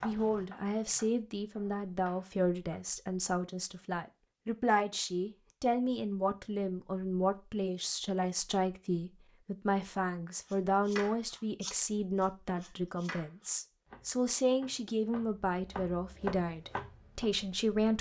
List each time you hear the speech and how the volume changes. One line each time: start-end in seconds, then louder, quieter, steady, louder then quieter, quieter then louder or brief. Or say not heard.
0.0-17.9 steady.